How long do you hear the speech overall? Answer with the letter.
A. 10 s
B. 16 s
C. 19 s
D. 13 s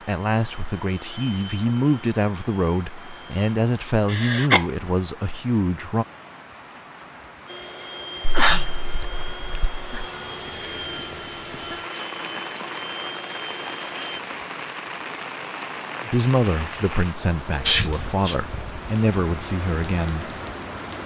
A.